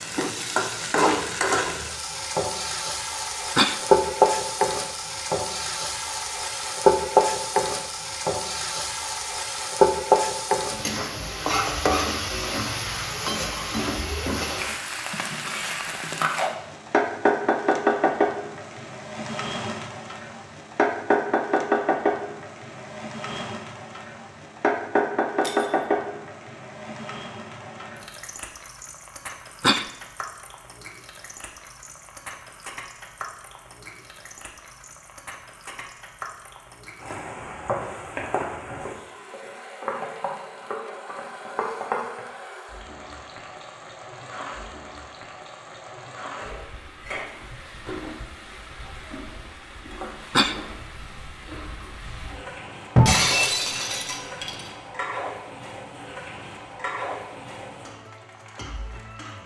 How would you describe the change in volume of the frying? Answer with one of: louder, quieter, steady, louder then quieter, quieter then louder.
quieter.